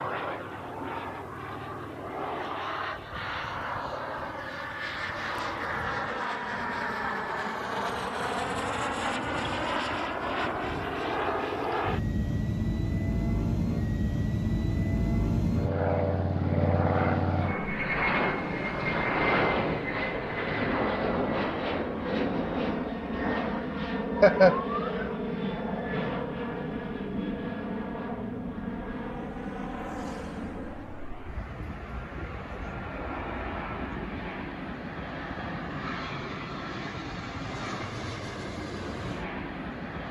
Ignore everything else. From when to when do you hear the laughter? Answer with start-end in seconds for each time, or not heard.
24.1-24.9.